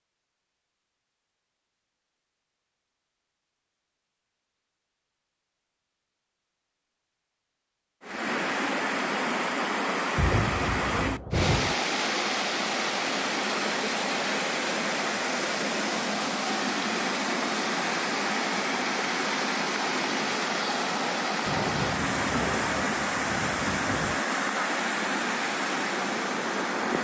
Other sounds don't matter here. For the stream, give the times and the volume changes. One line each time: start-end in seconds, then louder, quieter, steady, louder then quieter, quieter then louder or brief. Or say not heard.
8.0-27.0 steady.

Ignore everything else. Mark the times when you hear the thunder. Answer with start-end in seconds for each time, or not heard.
10.2-11.8, 21.4-24.2.